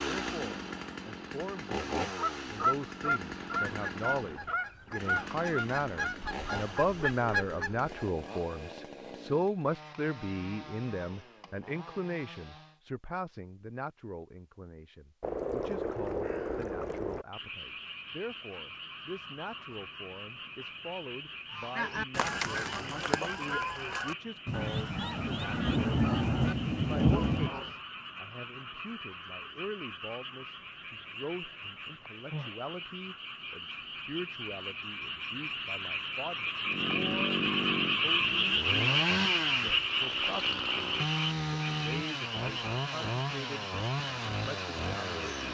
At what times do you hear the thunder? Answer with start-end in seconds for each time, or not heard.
24.4-27.5.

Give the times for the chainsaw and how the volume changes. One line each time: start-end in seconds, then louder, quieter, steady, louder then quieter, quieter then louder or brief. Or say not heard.
0.0-12.8 quieter
36.6-45.4 steady.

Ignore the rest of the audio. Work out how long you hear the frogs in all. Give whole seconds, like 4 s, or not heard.
30 s.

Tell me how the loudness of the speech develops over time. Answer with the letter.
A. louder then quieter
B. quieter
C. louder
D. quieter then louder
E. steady
B.